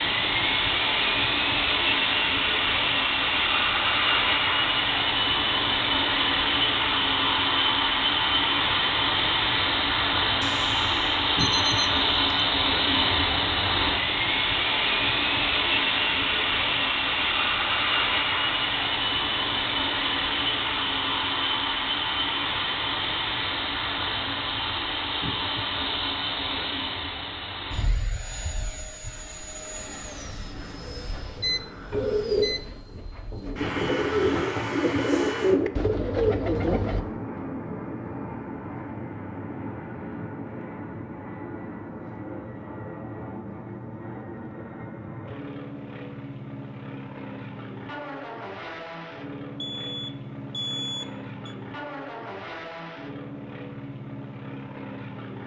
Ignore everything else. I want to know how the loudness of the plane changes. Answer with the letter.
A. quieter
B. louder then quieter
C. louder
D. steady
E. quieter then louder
A.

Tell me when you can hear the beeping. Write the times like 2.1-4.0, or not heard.
10.4-12.4, 30.8-32.8, 49.6-51.5.